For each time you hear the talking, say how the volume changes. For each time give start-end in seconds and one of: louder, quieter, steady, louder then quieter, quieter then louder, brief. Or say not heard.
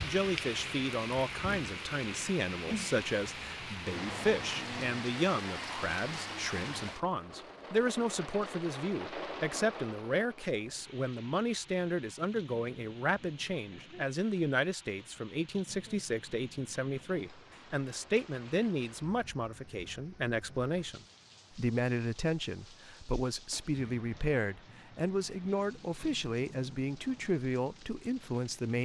0.0-28.8 steady.